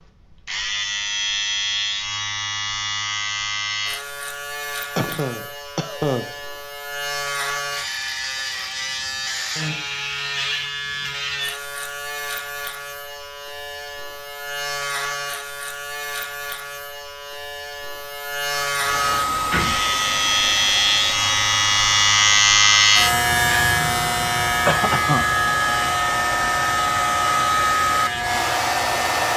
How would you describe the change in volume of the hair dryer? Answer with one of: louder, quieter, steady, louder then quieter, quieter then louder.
quieter then louder.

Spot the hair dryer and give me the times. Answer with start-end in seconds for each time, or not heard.
18.5-29.3.